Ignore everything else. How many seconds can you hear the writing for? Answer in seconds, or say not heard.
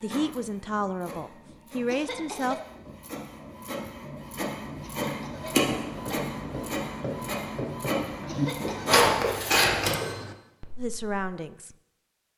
6 s.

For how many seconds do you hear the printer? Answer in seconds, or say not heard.
10 s.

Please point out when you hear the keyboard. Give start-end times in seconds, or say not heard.
not heard.